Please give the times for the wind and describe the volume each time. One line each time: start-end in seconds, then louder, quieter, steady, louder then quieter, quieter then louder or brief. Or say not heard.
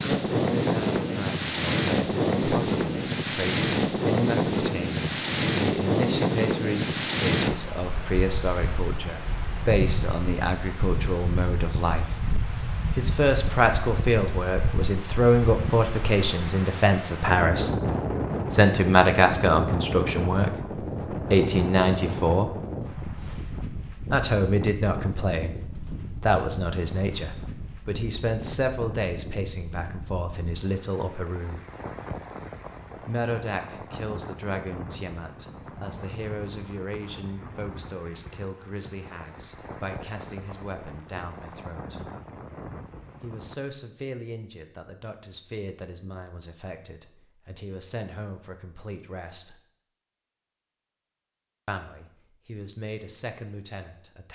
0.0-43.5 quieter.